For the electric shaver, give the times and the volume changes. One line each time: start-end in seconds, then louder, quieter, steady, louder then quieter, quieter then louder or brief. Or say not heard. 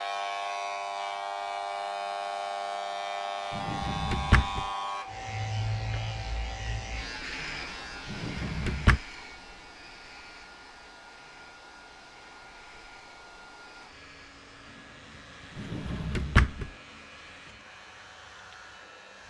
0.0-19.2 quieter.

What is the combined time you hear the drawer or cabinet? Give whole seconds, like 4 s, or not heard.
3 s.